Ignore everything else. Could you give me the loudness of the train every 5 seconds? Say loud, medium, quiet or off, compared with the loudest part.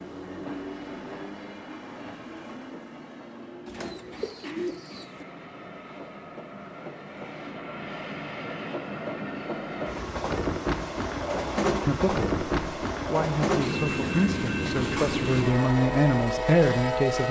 quiet, medium, loud, loud.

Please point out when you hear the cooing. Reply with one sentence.
The cooing can be heard from 3.6 to 5.2 s.